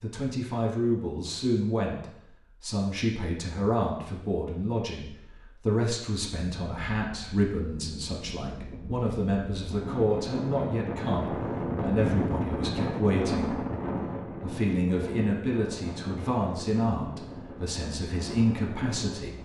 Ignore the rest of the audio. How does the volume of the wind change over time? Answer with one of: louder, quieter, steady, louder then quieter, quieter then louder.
louder then quieter.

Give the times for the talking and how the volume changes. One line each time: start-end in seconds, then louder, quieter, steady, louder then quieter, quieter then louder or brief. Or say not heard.
0.0-13.6 steady
14.4-19.4 quieter then louder.